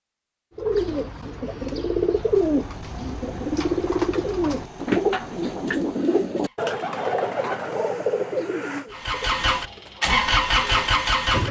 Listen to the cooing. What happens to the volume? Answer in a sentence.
The volume of the cooing goes down.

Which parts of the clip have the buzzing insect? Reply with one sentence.
You can't hear the buzzing insect here.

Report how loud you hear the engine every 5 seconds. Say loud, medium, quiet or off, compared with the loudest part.
quiet, medium, loud.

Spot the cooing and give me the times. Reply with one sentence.
You can hear the cooing from 0.6 to 10.9 s.